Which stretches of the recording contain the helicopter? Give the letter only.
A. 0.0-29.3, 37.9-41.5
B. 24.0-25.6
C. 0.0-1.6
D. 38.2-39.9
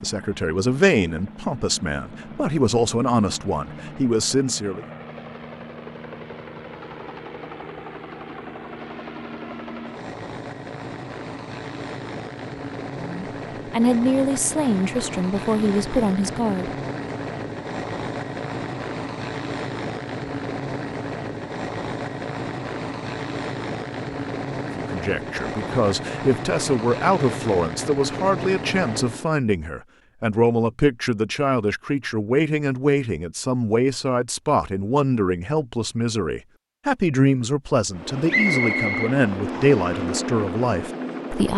A.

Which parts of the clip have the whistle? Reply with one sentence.
The whistle can be heard from 38.2 to 39.9 s.